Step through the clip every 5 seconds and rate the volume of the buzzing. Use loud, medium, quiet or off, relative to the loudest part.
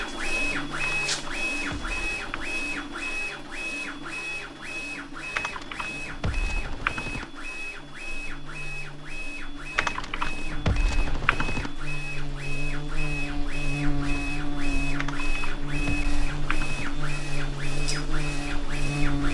quiet, quiet, loud, loud.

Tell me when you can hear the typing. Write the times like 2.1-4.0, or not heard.
0.8-2.5, 5.3-7.2, 9.8-11.7, 14.9-16.9.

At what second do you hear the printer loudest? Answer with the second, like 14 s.
1 s.